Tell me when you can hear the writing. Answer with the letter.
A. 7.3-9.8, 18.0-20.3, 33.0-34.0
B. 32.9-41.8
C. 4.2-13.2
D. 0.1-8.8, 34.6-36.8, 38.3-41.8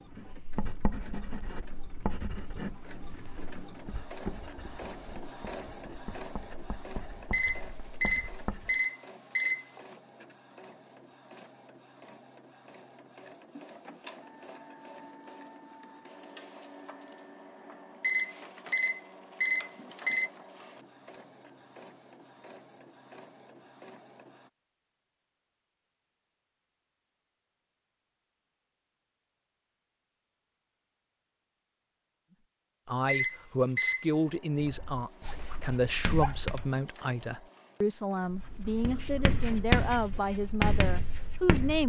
D.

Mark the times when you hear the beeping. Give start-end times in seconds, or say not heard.
7.3-9.8, 18.0-20.3, 33.0-34.0.